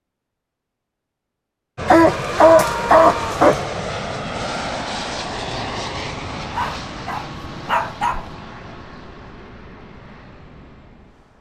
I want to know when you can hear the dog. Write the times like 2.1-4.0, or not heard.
1.9-3.6, 6.5-8.3.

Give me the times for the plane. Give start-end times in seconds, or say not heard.
1.8-11.3.